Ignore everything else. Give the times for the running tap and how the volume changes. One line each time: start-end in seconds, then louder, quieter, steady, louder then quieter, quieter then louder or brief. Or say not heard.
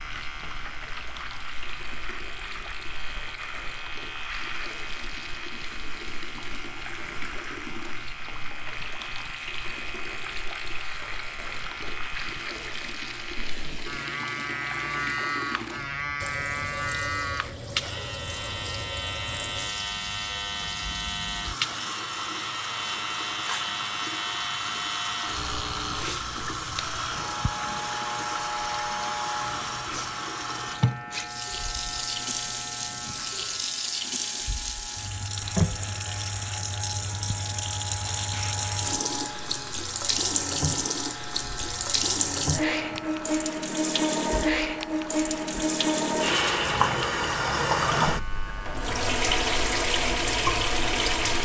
0.0-51.4 louder.